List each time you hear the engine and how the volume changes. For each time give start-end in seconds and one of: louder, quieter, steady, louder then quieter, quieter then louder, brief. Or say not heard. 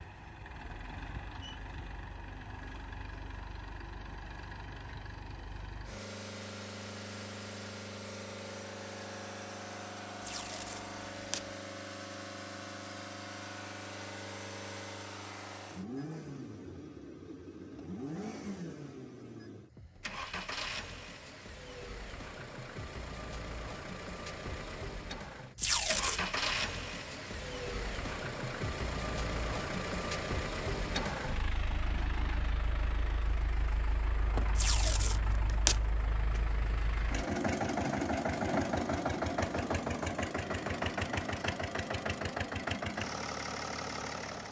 0.0-44.4 louder.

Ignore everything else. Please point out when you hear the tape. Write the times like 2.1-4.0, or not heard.
10.2-11.4, 25.6-26.2, 34.5-35.8.